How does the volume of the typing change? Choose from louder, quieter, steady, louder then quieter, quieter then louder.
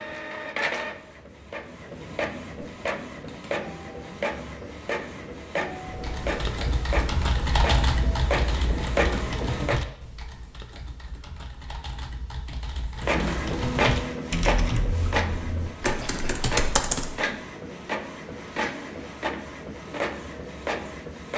quieter then louder.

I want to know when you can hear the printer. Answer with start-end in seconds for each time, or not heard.
0.0-9.8, 13.0-21.3.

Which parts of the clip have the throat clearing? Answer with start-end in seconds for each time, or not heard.
16.0-16.5.